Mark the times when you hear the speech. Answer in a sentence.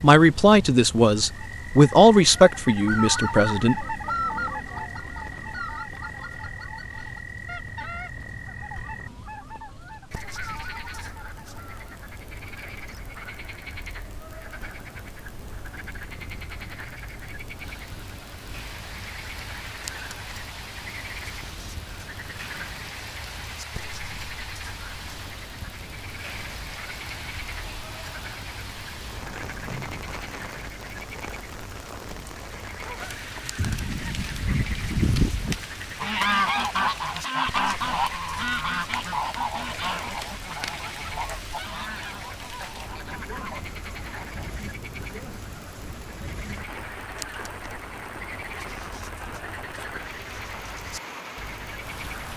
The speech can be heard from 0.0 to 3.9 s.